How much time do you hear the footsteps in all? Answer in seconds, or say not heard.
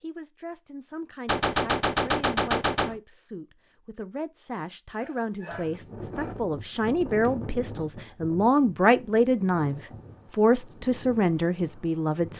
not heard.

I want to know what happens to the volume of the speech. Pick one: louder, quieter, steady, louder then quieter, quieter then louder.
louder.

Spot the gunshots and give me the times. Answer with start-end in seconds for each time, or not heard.
1.2-3.0.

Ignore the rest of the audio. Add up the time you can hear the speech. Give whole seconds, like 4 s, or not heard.
12 s.